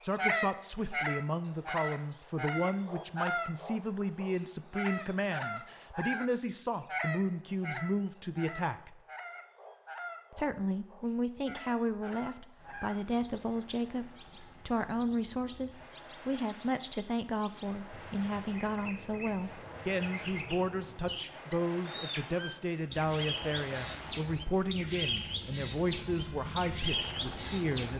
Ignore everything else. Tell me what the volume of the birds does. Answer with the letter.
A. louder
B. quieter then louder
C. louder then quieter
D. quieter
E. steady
B.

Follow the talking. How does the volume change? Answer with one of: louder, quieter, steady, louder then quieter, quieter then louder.
steady.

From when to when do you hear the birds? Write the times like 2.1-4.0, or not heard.
0.0-27.9.